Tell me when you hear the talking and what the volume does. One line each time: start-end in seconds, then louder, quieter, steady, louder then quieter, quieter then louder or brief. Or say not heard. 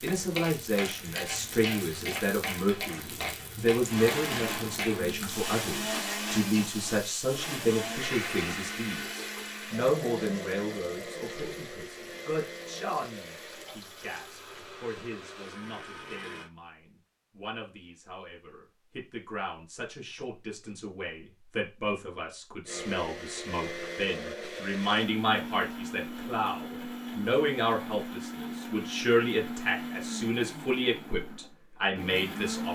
0.0-32.6 quieter then louder.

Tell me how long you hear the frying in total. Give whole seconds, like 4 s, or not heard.
15 s.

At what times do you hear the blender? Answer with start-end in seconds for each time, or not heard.
3.9-16.5, 22.6-32.6.